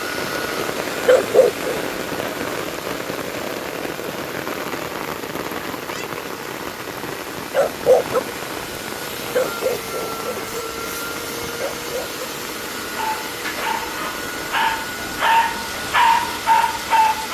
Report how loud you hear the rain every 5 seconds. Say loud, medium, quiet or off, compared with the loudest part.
loud, loud, medium, medium.